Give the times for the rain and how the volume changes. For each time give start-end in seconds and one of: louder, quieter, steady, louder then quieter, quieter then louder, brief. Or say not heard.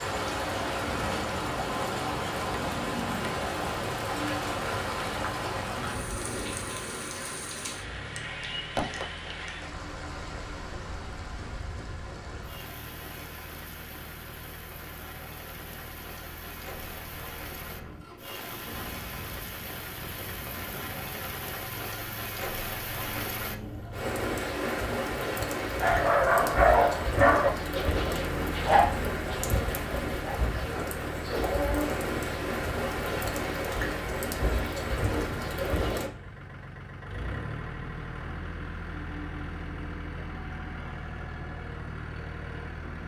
0.0-36.1 quieter then louder.